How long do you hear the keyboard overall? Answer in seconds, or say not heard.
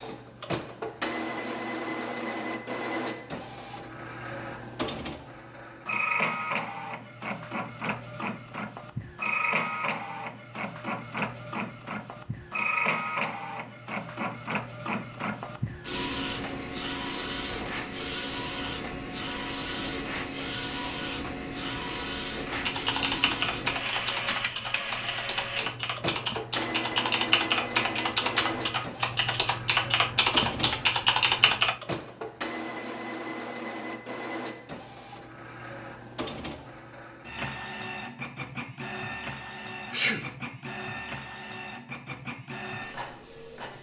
9 s.